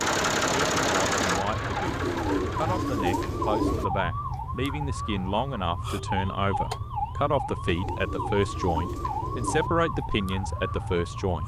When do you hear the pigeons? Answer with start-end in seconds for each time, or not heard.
1.9-3.9, 7.7-9.7.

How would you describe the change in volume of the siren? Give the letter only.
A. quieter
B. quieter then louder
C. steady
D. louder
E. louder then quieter
C.